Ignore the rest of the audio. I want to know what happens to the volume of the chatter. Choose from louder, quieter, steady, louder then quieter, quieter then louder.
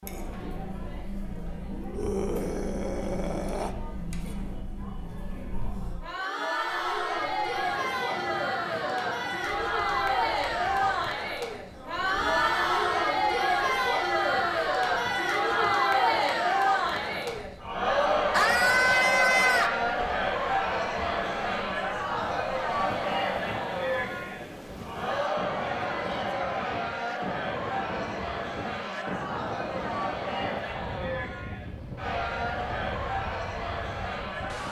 louder then quieter.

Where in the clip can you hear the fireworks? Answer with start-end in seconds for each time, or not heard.
not heard.